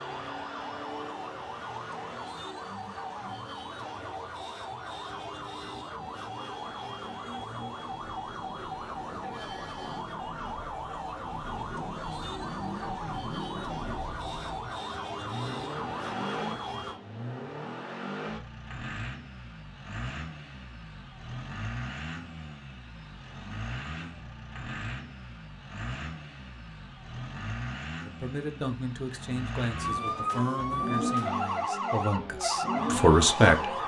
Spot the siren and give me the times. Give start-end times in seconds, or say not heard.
0.0-17.0, 29.7-33.8.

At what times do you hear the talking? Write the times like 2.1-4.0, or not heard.
28.0-33.7.